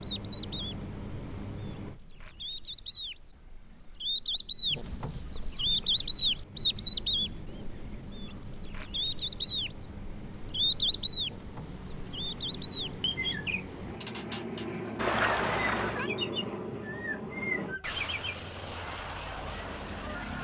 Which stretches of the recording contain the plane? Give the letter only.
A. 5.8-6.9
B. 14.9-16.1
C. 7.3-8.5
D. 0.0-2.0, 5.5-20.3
D.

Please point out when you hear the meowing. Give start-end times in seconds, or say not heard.
14.9-16.1.